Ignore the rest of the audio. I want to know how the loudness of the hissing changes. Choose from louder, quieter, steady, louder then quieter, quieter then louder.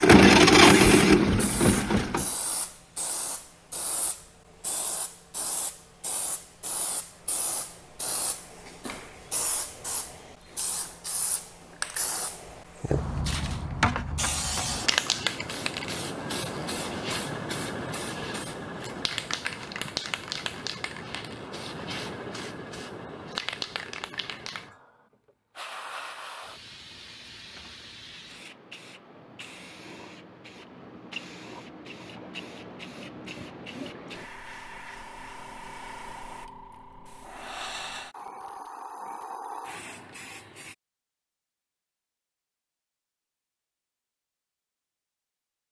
louder then quieter.